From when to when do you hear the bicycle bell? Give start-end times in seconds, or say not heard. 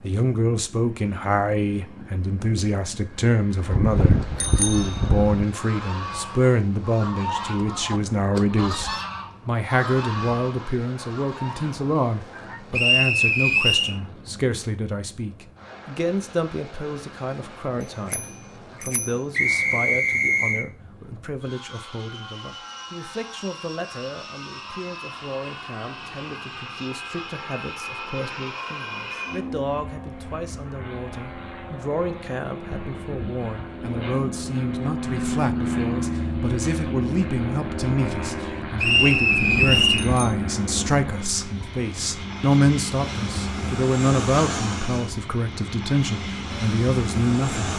3.7-5.5, 18.1-19.2, 39.4-40.4.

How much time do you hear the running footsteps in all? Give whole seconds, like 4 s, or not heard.
not heard.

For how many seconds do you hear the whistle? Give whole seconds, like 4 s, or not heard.
4 s.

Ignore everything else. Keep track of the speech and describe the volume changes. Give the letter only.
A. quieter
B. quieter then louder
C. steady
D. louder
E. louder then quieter
B.